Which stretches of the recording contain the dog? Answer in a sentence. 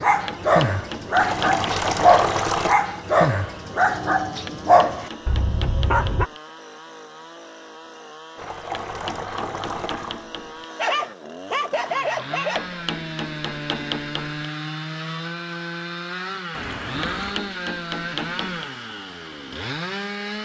You can hear the dog from 0.0 to 6.2 s and from 10.8 to 12.8 s.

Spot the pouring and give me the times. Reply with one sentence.
The pouring can be heard from 1.1 to 2.8 s, from 8.3 to 10.2 s and from 16.5 to 17.4 s.